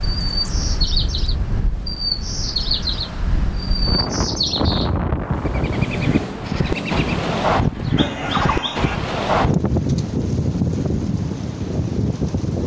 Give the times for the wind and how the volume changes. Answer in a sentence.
The wind can be heard from 0.0 to 12.6 s, getting louder.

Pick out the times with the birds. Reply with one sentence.
The birds can be heard from 0.0 to 9.0 s.